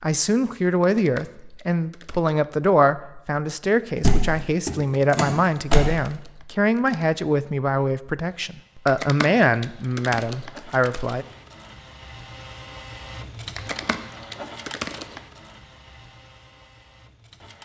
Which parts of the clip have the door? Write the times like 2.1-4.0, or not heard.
4.0-5.8.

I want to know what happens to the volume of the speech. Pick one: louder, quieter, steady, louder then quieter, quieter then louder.
steady.